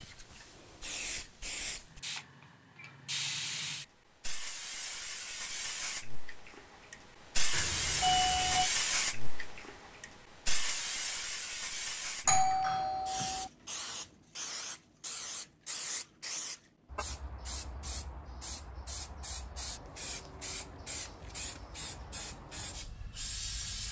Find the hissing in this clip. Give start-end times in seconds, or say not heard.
0.0-23.8.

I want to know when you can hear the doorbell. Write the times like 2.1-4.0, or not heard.
7.5-8.7, 12.2-13.5.